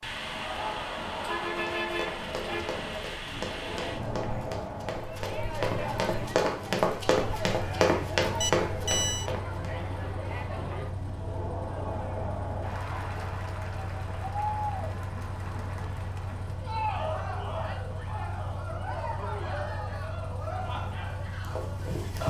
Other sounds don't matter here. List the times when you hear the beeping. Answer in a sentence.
The beeping can be heard from 8.4 to 9.3 s.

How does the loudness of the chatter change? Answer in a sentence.
The volume of the chatter stays about the same.